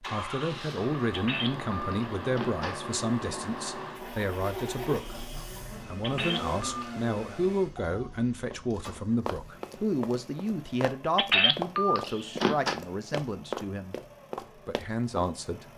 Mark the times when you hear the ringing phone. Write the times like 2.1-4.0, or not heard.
1.1-2.8, 6.0-7.0, 11.2-12.8.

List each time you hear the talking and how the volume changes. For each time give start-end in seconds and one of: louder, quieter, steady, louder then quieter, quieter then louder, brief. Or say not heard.
0.0-13.9 steady
14.7-15.7 brief.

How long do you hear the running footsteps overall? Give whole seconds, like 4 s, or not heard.
7 s.